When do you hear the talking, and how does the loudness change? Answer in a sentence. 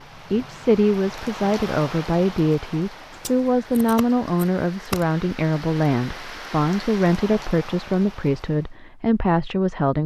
You can hear the talking from 0.3 to 10.0 s, at a steady volume.